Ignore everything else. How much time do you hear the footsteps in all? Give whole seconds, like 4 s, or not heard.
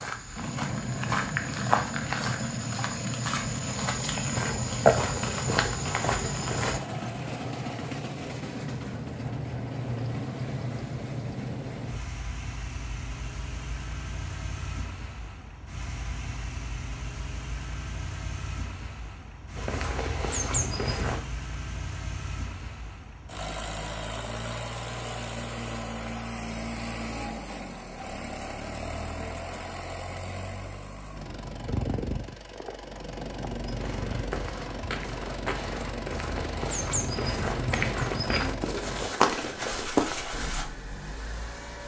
15 s.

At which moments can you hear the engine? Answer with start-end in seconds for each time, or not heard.
0.0-41.8.